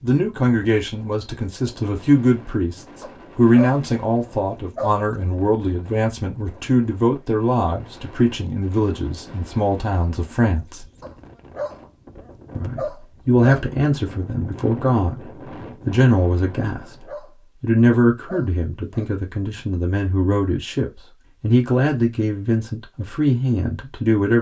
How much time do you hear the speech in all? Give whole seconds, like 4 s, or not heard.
22 s.